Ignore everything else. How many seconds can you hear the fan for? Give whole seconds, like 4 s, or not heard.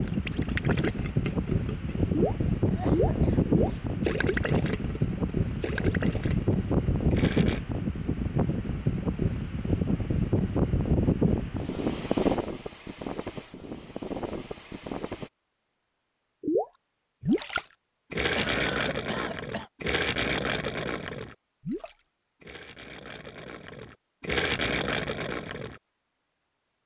15 s.